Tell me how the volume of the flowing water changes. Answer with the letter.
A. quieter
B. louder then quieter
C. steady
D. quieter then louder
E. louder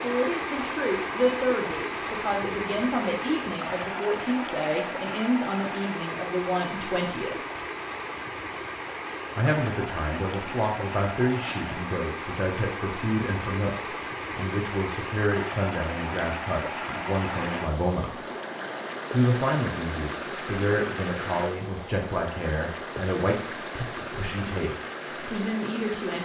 C.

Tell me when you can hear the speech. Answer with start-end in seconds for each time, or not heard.
0.0-7.3, 9.3-18.2, 19.1-26.1.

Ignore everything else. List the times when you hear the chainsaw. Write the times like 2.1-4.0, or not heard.
not heard.